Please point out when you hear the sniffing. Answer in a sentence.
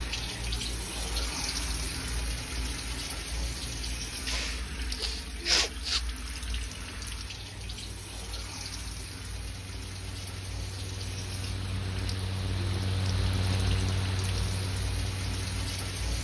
The sniffing can be heard from 4.2 to 6.0 s.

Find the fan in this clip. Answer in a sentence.
The fan can be heard from 6.3 to 16.1 s.